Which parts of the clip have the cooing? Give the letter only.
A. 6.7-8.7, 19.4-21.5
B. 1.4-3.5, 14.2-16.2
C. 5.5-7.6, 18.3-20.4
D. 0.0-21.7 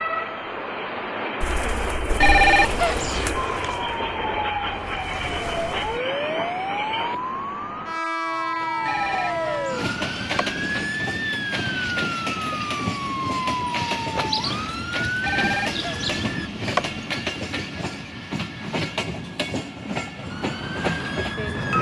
B.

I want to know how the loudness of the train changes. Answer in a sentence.
The loudness of the train stays about the same.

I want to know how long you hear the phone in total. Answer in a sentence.
The phone can be heard for 5 seconds in total.